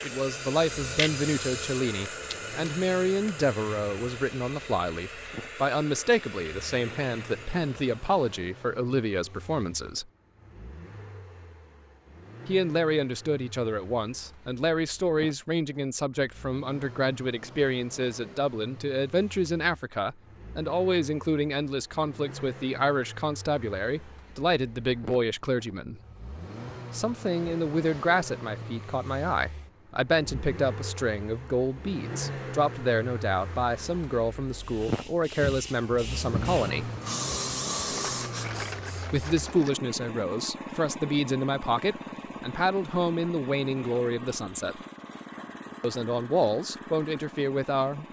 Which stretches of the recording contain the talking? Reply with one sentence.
You can hear the talking from 0.0 to 10.1 s, from 12.4 to 26.0 s, from 26.9 to 36.9 s, from 39.1 to 44.8 s and from 45.8 to 48.0 s.